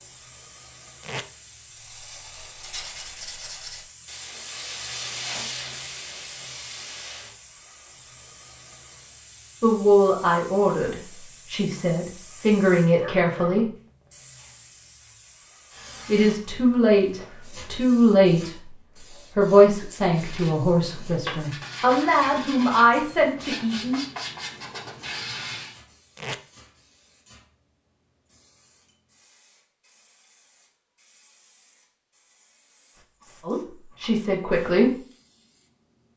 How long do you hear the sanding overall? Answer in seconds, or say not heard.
11 s.